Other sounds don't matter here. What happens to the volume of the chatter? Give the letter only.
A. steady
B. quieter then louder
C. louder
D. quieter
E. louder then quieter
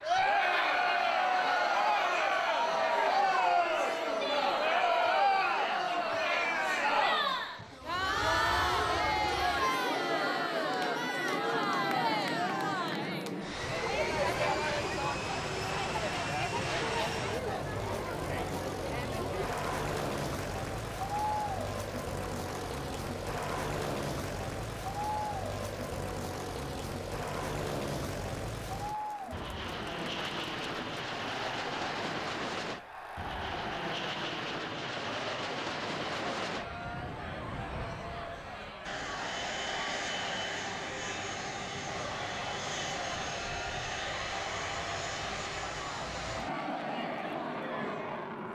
D.